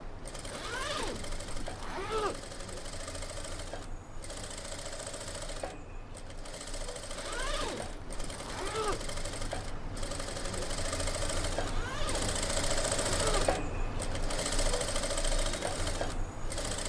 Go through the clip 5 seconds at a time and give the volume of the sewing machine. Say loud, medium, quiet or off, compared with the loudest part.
medium, medium, loud, loud.